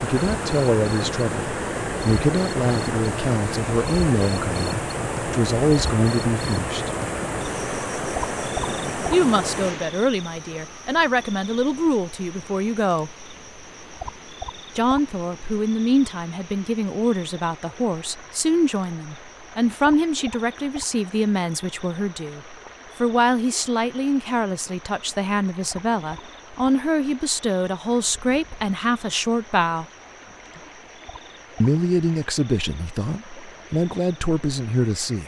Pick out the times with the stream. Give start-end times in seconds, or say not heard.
0.0-35.2.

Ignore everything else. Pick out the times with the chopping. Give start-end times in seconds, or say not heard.
not heard.